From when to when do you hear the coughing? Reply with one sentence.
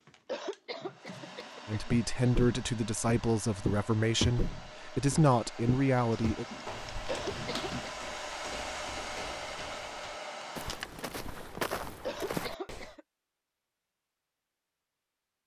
The coughing can be heard from 0.2 to 2.3 s, from 7.0 to 8.0 s and from 12.0 to 13.0 s.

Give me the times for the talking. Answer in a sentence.
The talking can be heard from 1.6 to 6.5 s.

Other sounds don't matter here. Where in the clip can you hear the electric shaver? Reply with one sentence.
The electric shaver can't be heard in this clip.